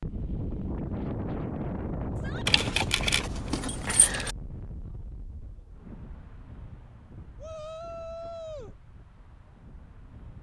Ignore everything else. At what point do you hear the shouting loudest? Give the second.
8 s.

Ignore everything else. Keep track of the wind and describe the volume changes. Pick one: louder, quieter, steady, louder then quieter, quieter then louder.
quieter.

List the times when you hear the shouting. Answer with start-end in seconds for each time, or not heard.
2.1-2.6, 7.4-8.8.